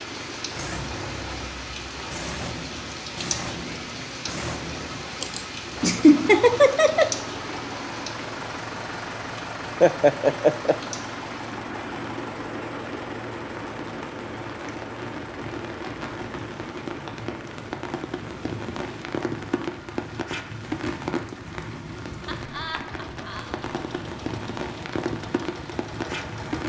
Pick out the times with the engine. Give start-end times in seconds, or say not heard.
0.0-26.6.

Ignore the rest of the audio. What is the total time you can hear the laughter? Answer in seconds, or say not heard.
4 s.